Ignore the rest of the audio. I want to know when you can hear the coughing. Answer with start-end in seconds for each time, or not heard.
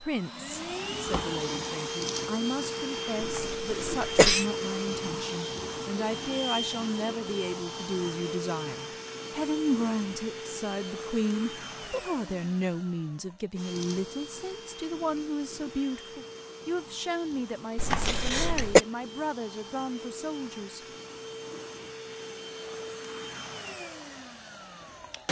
3.2-4.5, 17.8-18.8.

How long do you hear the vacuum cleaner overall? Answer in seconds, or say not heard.
25 s.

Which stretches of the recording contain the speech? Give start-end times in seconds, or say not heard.
0.0-20.9.